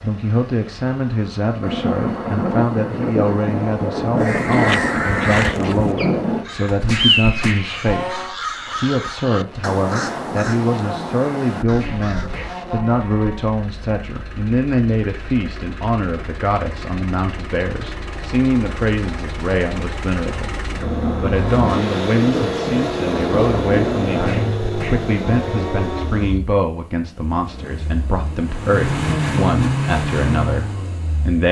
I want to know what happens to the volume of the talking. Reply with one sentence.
The volume of the talking stays about the same.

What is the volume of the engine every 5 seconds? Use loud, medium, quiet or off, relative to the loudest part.
quiet, quiet, medium, medium, loud, loud, loud.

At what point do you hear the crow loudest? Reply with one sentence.
The volume of the crow peaks at 7 seconds.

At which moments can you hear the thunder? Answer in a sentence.
The thunder can be heard from 1.6 to 6.5 s and from 20.8 to 24.5 s.